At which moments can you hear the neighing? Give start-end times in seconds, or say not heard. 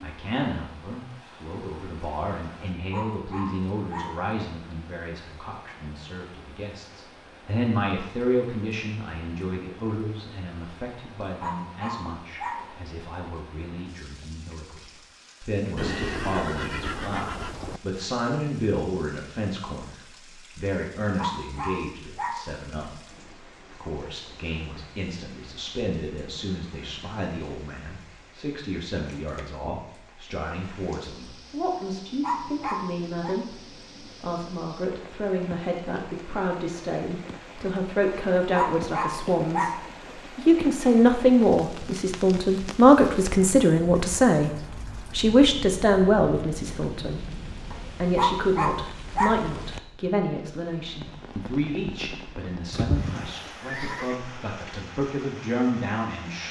15.8-17.8, 52.7-54.1.